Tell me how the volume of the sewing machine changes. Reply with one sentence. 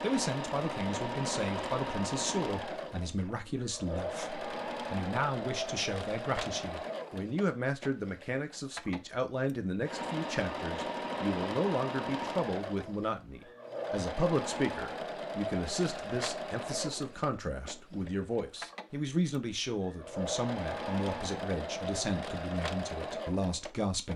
The volume of the sewing machine stays about the same.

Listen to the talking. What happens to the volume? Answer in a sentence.
The loudness of the talking stays about the same.